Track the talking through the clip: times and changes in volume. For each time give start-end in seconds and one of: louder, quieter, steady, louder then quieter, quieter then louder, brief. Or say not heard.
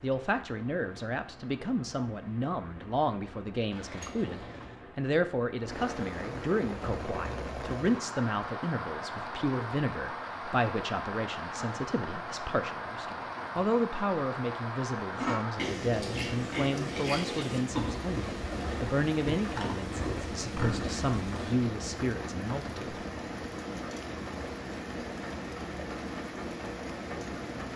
0.0-23.1 steady.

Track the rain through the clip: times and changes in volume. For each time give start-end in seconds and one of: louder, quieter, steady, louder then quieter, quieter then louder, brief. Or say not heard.
0.0-27.7 louder.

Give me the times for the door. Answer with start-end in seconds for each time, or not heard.
3.7-4.9.